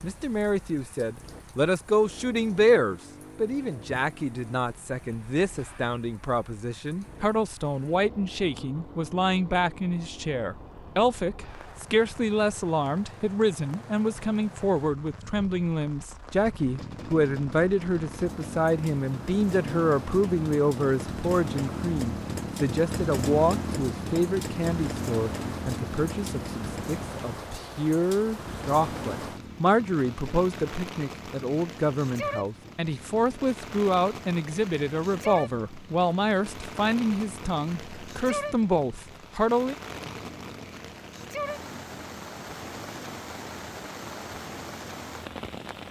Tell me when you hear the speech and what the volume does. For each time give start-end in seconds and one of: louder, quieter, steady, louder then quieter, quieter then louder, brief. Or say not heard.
0.0-39.8 steady.